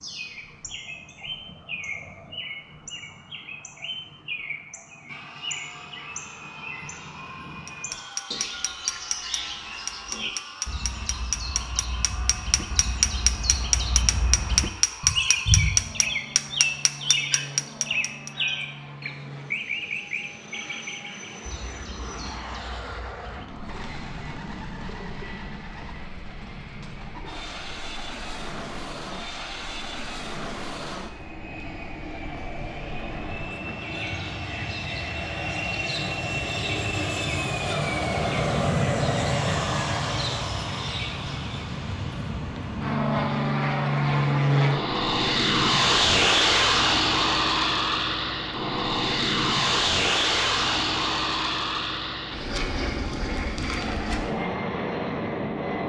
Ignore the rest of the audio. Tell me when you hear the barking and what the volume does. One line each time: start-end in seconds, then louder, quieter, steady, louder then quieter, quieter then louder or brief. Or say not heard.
not heard.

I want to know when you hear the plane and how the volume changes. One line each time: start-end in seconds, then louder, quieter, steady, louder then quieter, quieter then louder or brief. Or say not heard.
5.0-55.8 louder.